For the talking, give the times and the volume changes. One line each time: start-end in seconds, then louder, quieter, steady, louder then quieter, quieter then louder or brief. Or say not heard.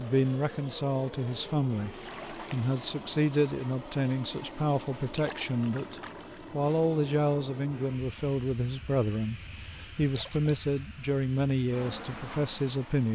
0.0-13.0 steady.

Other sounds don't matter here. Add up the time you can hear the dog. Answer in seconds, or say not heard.
not heard.